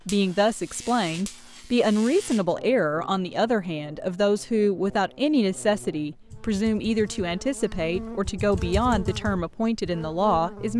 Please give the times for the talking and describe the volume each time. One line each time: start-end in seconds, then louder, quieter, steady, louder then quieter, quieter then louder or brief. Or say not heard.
0.1-10.7 steady.